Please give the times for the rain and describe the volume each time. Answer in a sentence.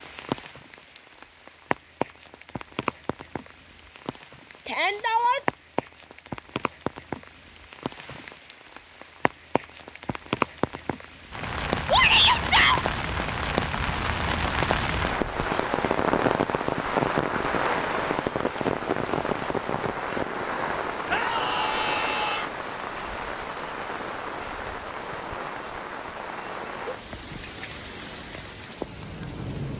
You can hear the rain from 0.0 to 29.7 s, getting louder then quieter.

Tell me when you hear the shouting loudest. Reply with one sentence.
The loudest moment of the shouting is at 12 seconds.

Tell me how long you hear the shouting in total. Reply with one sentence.
The shouting can be heard for 3 seconds in total.